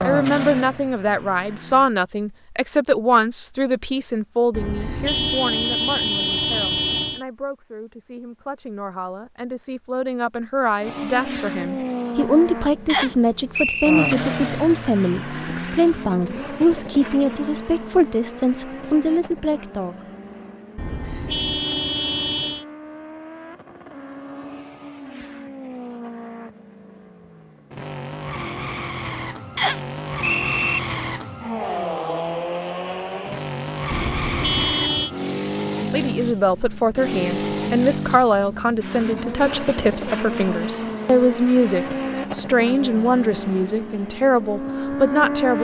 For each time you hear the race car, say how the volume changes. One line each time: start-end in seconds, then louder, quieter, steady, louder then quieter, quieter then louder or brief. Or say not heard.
0.0-1.9 brief
10.8-45.6 quieter then louder.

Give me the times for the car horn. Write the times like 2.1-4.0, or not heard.
4.5-7.2, 20.8-22.6, 33.9-35.1.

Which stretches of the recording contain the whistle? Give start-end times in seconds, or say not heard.
12.8-14.2, 29.6-30.8.